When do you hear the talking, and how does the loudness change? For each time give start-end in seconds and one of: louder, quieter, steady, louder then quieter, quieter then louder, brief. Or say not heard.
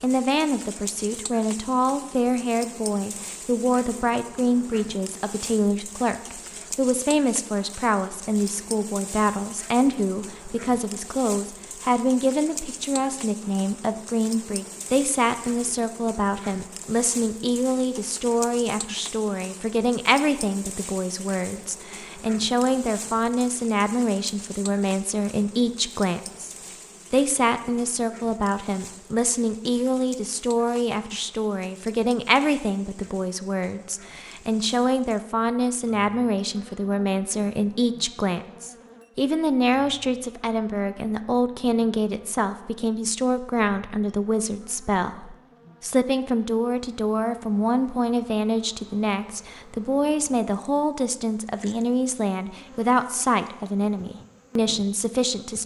0.0-26.5 steady
27.1-55.6 steady.